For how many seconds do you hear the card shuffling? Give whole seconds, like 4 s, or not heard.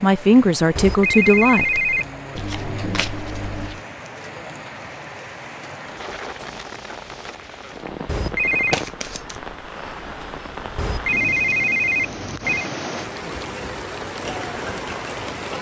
2 s.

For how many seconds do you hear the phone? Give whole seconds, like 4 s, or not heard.
4 s.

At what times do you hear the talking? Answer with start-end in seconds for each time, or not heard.
0.0-1.9.